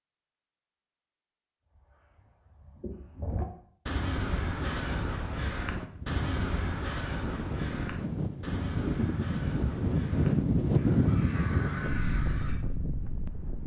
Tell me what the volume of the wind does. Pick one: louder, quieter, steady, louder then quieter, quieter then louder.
louder then quieter.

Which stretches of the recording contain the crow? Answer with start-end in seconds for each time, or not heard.
1.8-12.6.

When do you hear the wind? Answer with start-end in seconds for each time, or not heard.
4.4-13.6.